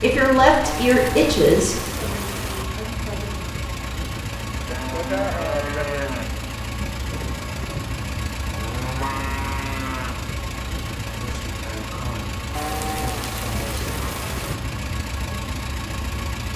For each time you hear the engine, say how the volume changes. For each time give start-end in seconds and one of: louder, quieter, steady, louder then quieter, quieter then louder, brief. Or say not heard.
0.0-16.5 steady.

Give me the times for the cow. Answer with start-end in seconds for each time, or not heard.
0.6-2.6, 4.7-6.3, 8.5-10.2, 12.6-14.6.